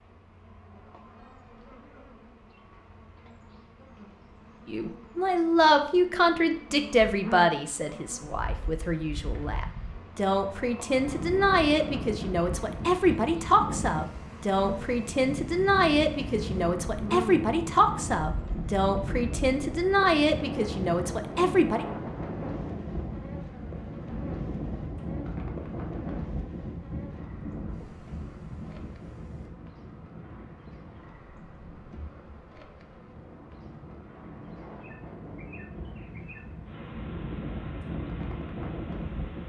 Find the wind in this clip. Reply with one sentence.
The wind can be heard from 10.8 to 39.4 s.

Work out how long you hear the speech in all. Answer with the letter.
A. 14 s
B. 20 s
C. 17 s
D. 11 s
C.